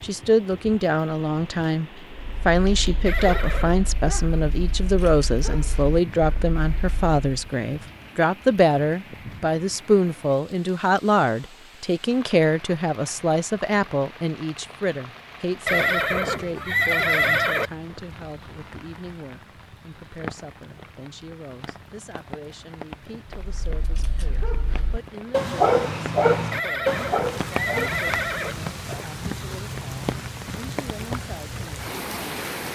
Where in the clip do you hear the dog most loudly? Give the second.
26 s.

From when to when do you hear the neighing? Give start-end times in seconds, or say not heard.
3.0-3.8, 15.7-17.7, 26.5-28.6.